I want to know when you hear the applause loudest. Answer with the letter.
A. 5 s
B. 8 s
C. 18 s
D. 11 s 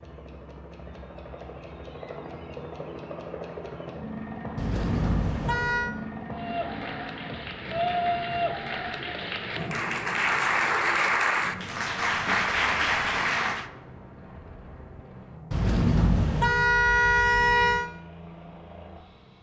D.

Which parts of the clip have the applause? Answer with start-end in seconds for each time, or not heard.
6.3-13.7.